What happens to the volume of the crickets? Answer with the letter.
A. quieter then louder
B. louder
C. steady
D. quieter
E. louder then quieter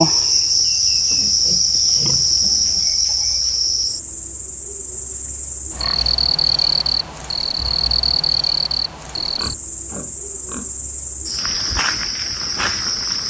D.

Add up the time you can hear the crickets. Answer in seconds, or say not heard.
13 s.